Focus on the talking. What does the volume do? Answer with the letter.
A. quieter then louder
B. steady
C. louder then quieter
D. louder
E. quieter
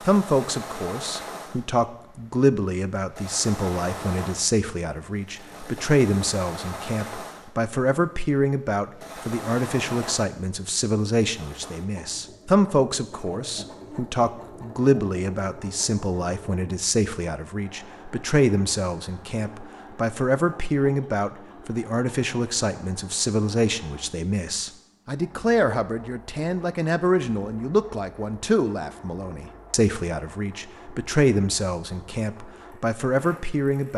B.